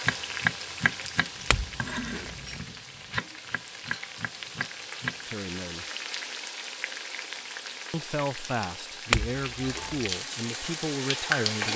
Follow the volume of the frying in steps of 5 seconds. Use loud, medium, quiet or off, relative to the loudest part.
medium, medium, loud.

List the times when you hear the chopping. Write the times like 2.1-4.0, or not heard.
0.1-5.2.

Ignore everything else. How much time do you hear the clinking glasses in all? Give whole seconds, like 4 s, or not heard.
2 s.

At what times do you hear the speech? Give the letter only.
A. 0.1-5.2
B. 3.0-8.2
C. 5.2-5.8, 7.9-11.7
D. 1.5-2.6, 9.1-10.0
C.